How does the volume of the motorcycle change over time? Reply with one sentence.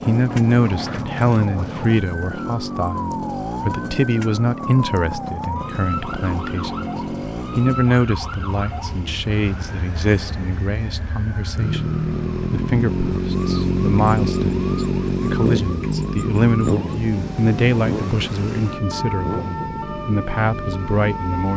The volume of the motorcycle goes up, then down.